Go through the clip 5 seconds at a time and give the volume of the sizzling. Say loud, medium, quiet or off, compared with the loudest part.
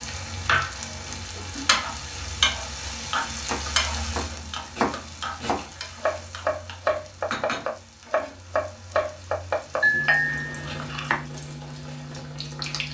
loud, medium, medium.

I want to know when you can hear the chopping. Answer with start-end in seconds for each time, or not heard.
3.4-11.2.